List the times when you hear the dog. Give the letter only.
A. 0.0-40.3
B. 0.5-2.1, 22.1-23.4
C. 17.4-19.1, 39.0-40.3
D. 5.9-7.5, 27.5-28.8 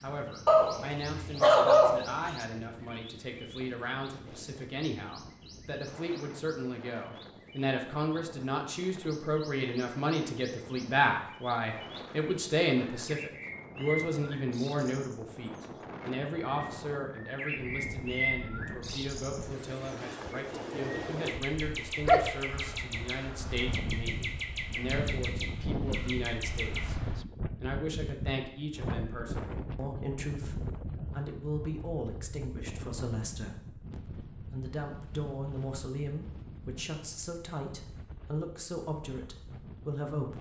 B.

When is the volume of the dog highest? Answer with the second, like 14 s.
2 s.